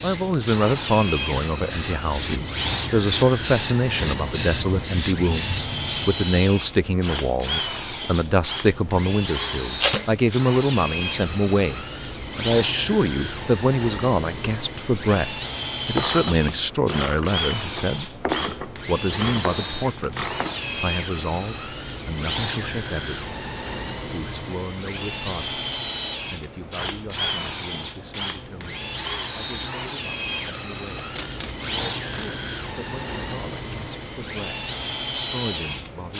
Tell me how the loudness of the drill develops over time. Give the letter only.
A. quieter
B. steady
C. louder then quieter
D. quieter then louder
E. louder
B.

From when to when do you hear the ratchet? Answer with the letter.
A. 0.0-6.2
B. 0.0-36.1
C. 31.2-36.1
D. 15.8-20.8
D.